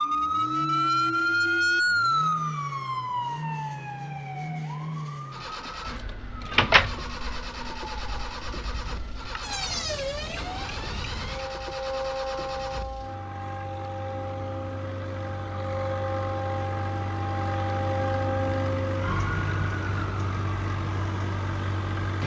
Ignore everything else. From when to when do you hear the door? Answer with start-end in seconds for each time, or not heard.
not heard.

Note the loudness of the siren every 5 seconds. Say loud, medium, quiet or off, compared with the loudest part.
loud, medium, medium, medium, quiet.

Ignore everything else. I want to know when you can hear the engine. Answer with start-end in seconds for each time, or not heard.
0.0-22.2.